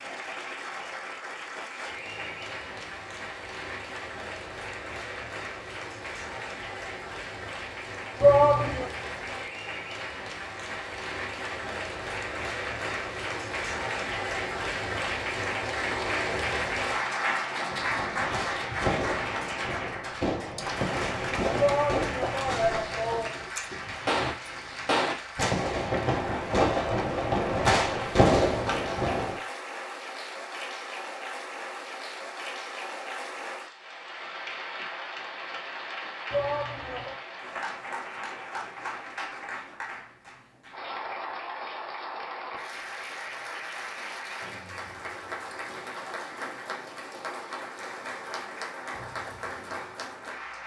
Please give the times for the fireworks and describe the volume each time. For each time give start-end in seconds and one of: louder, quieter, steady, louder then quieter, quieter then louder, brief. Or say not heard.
17.7-29.4 louder.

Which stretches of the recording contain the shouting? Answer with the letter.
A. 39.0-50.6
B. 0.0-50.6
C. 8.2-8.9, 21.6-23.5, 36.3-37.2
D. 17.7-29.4
C.